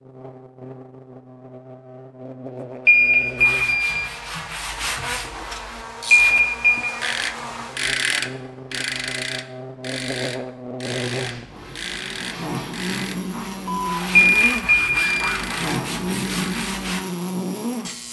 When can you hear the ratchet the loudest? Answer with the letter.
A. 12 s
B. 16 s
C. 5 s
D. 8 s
D.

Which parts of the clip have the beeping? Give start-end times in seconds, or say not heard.
2.9-4.0, 6.1-6.8, 14.2-15.3.